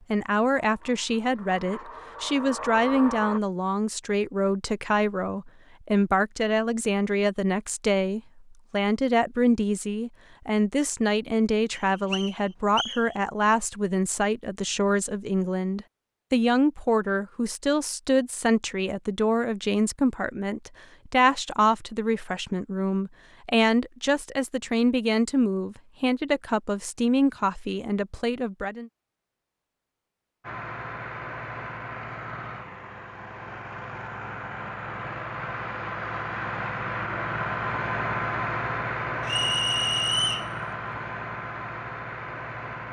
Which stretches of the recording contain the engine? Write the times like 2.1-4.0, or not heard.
0.0-3.4, 30.4-42.8.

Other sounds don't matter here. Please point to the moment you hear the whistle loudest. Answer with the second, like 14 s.
40 s.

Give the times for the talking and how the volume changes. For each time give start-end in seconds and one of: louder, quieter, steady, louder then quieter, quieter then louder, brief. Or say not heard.
0.1-28.9 steady.